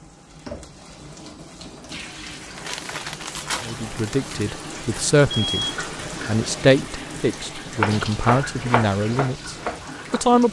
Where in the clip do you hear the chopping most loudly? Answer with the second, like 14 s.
8 s.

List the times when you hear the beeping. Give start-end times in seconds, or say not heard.
5.5-6.7.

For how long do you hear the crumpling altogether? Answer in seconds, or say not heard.
2 s.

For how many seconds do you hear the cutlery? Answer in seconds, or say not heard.
not heard.